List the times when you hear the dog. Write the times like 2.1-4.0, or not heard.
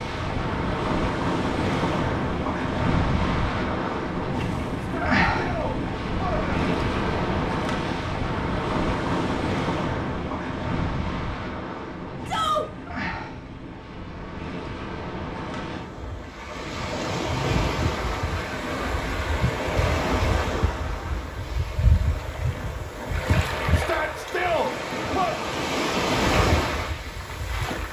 not heard.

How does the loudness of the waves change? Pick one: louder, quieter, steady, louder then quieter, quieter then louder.
quieter then louder.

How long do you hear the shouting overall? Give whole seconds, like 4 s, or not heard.
4 s.